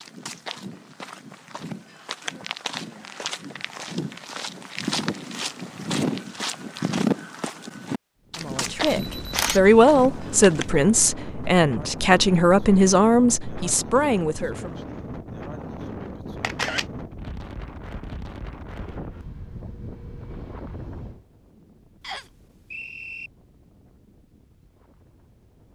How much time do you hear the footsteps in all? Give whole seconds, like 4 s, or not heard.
11 s.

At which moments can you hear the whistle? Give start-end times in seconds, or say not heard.
22.0-23.3.